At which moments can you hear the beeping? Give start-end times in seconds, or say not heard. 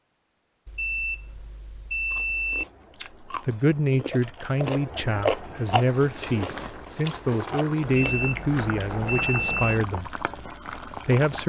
0.7-2.6, 7.8-9.8.